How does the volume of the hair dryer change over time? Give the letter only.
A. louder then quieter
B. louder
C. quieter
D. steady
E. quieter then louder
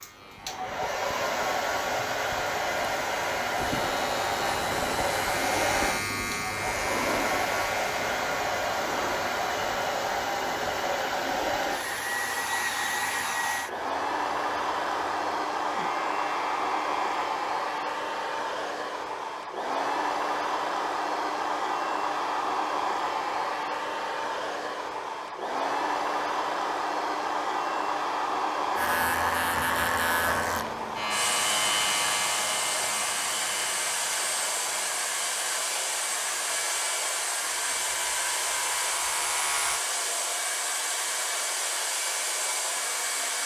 D.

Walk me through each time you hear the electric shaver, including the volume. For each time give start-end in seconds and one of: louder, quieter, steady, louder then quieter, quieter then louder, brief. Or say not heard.
0.0-17.1 louder then quieter
28.8-39.9 quieter then louder.